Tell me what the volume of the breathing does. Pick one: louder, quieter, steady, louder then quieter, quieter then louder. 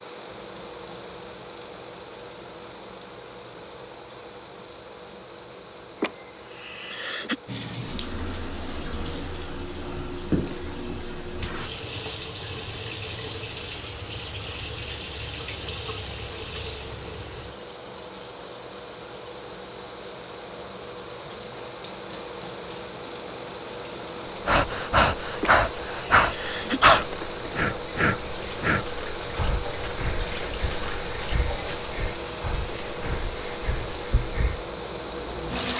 quieter.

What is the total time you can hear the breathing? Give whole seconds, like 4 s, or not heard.
10 s.